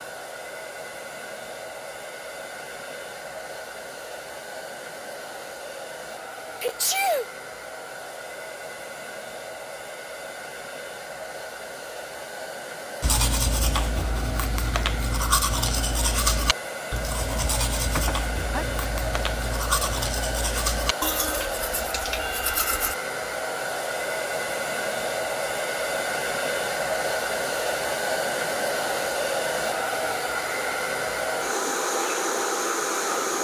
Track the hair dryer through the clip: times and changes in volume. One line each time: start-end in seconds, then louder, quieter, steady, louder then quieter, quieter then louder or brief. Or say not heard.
0.0-33.3 louder.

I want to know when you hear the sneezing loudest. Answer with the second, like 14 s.
7 s.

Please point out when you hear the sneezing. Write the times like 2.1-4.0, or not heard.
6.6-7.2, 17.9-18.6.